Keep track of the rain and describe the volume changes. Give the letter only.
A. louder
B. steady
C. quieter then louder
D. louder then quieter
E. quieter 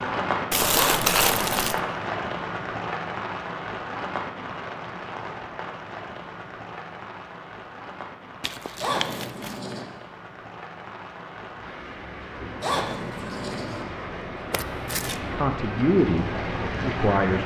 C.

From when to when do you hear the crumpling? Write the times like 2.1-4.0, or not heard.
0.5-1.8, 8.4-9.6, 14.5-15.2.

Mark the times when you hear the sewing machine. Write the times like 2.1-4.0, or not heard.
not heard.